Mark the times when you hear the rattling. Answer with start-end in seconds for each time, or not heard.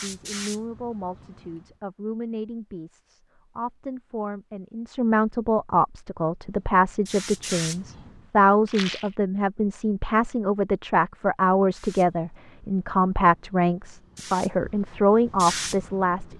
8.7-9.2.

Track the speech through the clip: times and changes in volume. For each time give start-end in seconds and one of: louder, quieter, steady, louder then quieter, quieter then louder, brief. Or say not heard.
0.0-16.3 louder.